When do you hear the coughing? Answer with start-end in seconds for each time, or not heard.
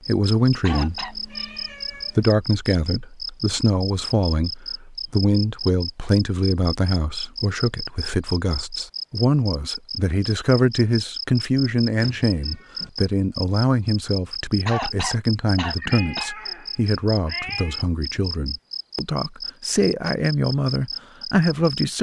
0.6-1.1, 14.7-16.3.